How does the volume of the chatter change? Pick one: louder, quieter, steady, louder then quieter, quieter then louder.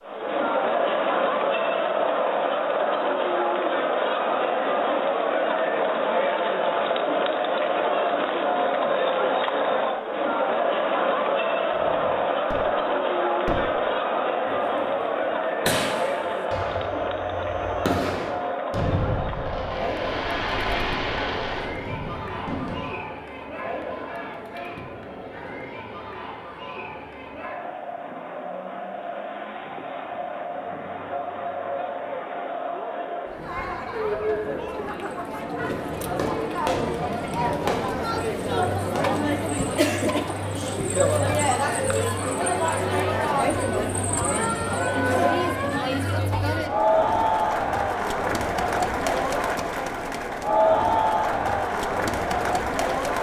quieter then louder.